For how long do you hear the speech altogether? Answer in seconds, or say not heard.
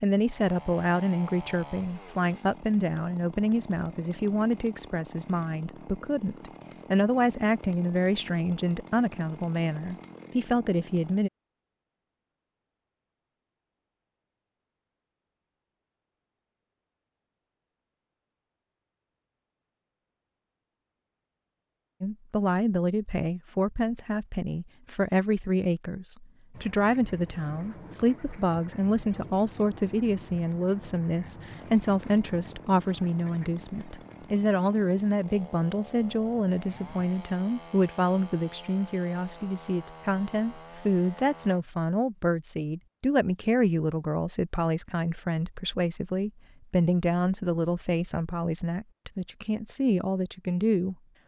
40 s.